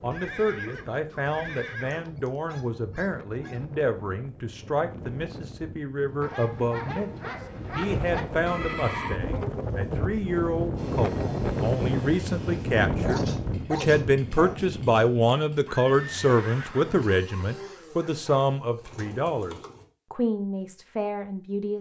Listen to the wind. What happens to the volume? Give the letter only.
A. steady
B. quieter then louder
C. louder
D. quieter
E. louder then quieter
C.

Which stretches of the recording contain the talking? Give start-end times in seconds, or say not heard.
0.0-21.7.